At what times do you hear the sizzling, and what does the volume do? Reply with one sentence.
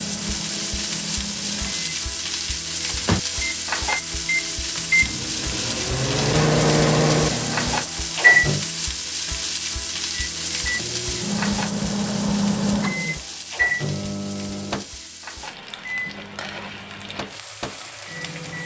You can hear the sizzling from 0.0 to 18.6 s, getting quieter.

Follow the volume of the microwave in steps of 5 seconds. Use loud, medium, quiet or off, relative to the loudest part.
medium, loud, medium, quiet.